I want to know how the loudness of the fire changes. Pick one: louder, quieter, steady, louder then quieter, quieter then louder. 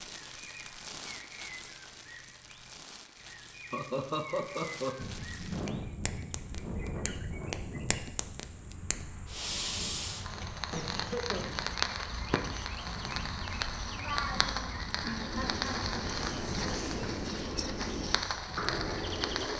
louder.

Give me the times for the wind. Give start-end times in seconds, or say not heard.
5.0-19.5.